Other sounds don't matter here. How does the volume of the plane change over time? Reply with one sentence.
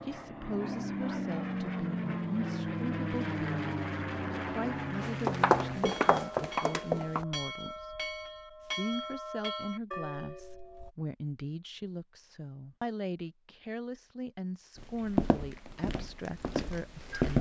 The volume of the plane stays about the same.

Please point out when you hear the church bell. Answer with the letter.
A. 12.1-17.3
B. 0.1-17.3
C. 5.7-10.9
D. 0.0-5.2
C.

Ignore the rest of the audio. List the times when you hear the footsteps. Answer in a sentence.
You can hear the footsteps from 5.0 to 7.2 s and from 14.8 to 17.3 s.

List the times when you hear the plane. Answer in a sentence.
The plane can be heard from 0.0 to 5.8 s.